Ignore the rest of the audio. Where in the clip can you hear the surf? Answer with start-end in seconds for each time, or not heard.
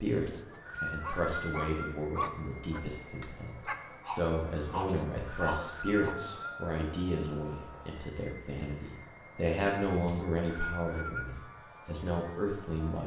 not heard.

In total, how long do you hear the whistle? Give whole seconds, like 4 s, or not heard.
5 s.